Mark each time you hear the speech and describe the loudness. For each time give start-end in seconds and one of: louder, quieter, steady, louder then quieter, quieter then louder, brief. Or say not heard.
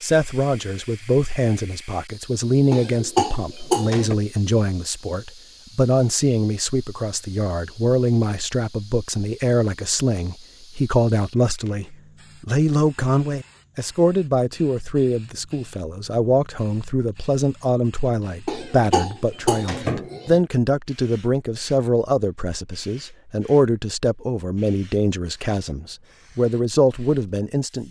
0.0-27.8 steady.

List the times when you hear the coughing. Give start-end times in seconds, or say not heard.
2.7-4.2, 18.4-20.4.